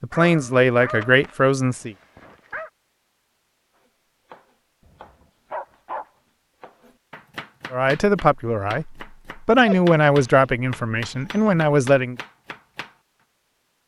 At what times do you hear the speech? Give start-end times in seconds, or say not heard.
0.0-1.9, 7.7-12.2.